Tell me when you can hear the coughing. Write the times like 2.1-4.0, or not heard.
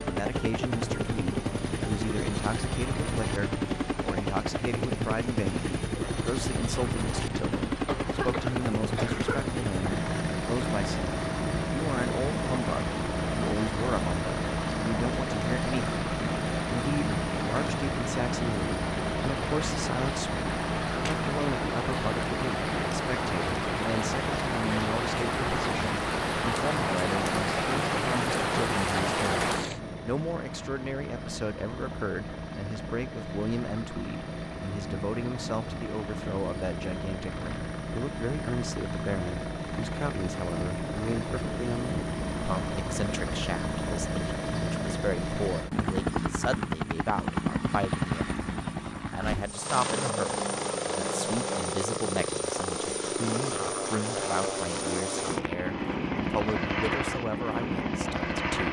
7.8-9.4.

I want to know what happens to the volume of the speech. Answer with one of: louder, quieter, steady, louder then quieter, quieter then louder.
steady.